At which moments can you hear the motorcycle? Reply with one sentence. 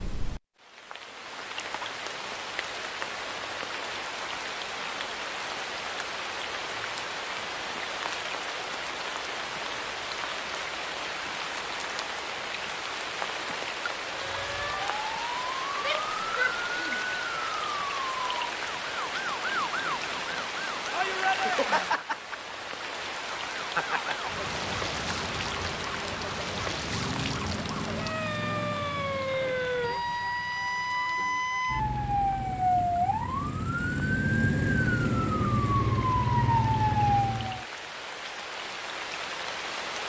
The motorcycle can be heard from 26.9 to 35.8 s.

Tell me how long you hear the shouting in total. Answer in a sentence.
The shouting can be heard for 2 seconds in total.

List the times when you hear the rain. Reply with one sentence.
The rain can be heard from 0.0 to 40.0 s.